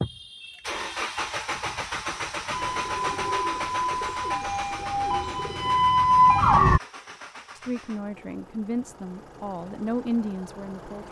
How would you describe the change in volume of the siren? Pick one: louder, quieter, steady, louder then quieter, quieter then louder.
louder.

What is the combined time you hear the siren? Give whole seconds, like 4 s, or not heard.
4 s.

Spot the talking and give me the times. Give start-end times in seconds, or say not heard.
7.5-11.0.